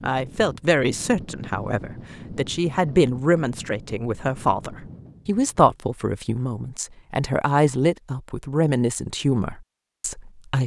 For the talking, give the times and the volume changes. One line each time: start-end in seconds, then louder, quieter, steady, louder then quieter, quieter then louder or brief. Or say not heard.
0.0-10.6 steady.